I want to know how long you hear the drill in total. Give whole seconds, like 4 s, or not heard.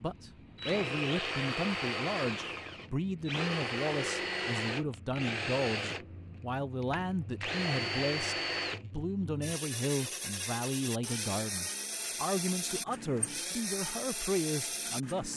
15 s.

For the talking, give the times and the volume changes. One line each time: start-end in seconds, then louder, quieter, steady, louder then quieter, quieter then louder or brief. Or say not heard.
0.0-15.3 steady.